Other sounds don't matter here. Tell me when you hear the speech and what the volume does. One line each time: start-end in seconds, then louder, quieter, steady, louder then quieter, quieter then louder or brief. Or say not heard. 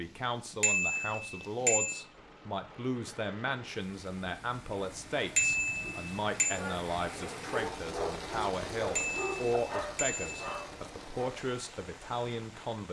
0.0-12.8 steady.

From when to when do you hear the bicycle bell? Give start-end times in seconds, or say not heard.
0.6-2.0, 5.3-6.5, 8.9-10.5.